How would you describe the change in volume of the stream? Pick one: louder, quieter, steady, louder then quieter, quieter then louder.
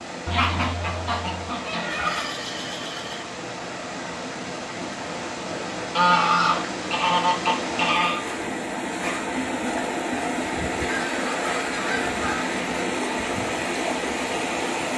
louder.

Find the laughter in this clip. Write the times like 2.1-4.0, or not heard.
1.9-3.2.